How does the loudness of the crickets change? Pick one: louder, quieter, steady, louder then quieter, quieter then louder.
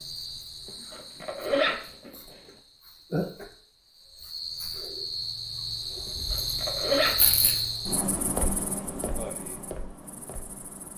louder then quieter.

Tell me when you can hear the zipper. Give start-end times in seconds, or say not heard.
0.7-2.1, 6.0-7.5.